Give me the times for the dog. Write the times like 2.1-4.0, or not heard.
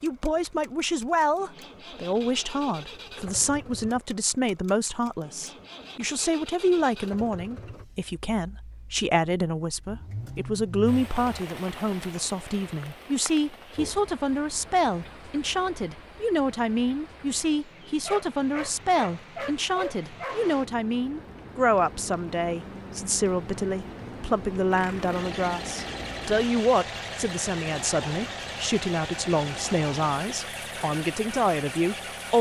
17.6-20.4.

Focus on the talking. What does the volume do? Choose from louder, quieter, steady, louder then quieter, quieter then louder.
steady.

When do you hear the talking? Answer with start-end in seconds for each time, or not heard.
0.0-32.3.